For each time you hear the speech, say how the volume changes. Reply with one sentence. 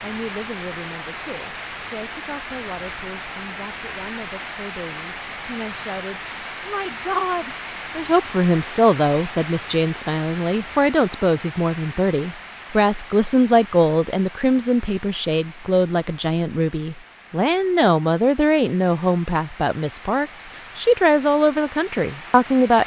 You can hear the speech from 0.0 to 22.8 s, getting louder.